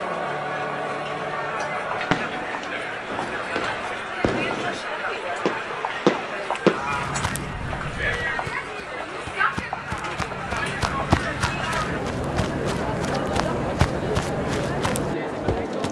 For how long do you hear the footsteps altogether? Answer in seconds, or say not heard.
9 s.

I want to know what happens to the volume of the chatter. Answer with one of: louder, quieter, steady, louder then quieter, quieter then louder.
steady.